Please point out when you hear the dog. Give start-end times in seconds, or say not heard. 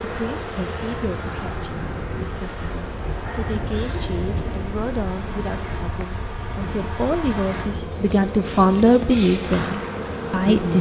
not heard.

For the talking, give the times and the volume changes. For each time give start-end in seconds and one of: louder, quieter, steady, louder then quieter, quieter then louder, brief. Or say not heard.
0.1-10.7 louder.